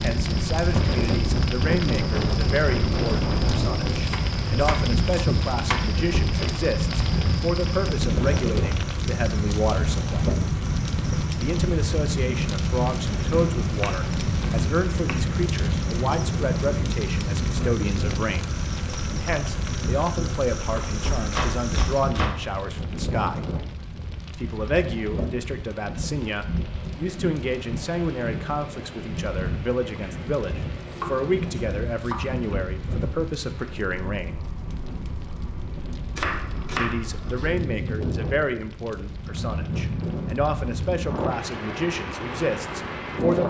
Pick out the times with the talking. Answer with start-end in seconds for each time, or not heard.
0.0-10.3, 11.3-23.5, 24.4-34.4, 36.8-43.4.